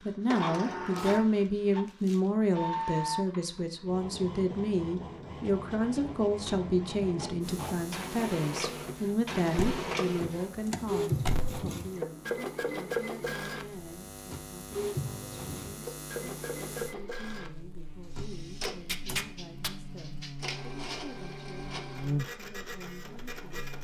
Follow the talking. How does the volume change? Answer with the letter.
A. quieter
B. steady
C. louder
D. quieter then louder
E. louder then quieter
A.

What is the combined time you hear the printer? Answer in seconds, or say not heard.
24 s.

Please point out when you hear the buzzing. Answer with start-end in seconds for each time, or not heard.
7.4-23.7.